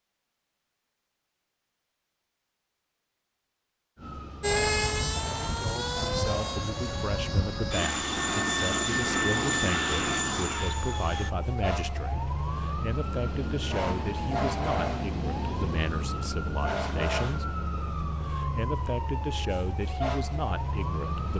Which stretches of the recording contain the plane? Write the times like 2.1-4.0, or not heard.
4.4-11.3.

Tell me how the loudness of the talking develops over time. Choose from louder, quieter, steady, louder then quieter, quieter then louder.
steady.